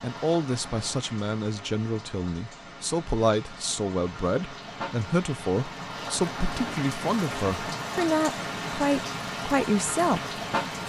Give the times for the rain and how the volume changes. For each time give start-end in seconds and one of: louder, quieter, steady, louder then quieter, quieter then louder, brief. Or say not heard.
0.0-10.8 louder.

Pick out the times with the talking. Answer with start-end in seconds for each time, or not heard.
0.0-10.4.